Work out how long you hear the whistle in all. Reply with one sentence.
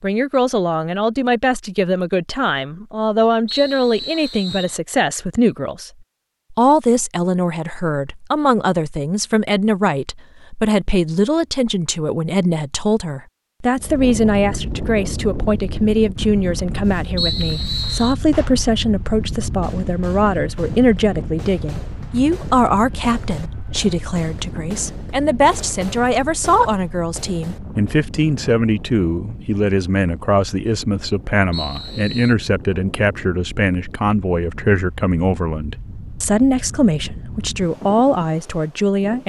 You can hear the whistle for 3 seconds altogether.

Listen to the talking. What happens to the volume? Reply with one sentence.
The loudness of the talking stays about the same.